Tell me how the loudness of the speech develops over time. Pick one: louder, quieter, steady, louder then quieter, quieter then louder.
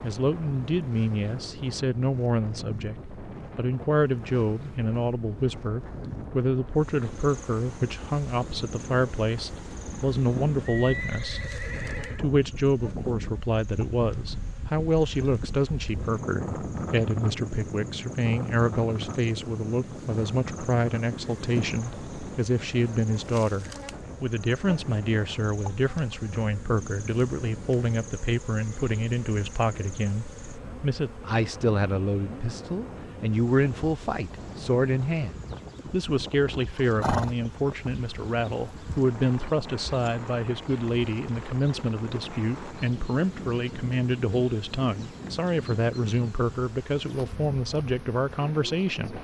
steady.